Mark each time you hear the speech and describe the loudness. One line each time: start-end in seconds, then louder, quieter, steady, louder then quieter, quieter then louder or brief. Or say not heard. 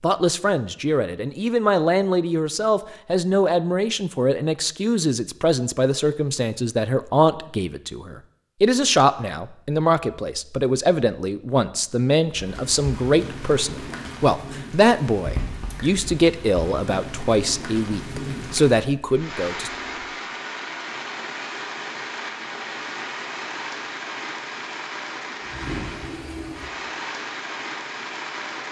0.0-19.7 steady.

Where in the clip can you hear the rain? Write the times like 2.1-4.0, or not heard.
12.2-28.6.